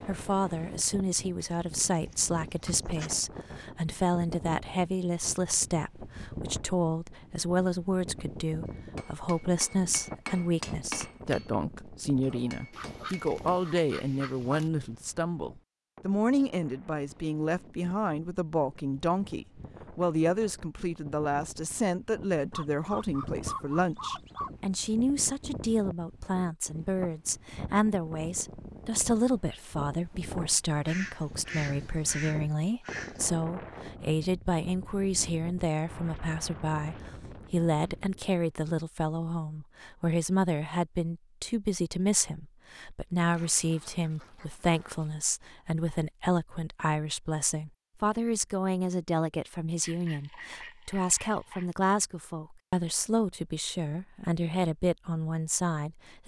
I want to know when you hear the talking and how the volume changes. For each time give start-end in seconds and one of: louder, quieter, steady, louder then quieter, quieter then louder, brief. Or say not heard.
0.1-56.2 steady.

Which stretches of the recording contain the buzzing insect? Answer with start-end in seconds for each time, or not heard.
not heard.